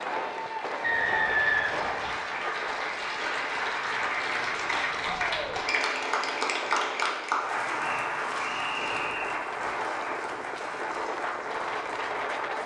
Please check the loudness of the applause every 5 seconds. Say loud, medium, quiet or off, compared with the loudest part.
loud, loud, medium.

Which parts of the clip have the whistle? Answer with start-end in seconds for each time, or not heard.
0.8-2.2, 7.8-9.4.